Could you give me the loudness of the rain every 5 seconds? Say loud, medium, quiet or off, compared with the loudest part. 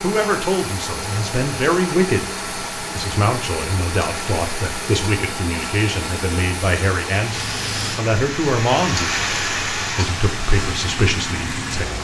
medium, loud, loud.